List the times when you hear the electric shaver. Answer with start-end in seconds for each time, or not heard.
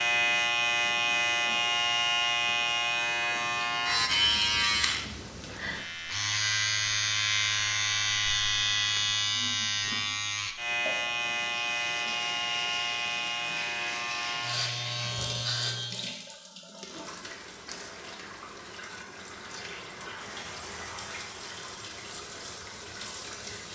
0.0-16.2.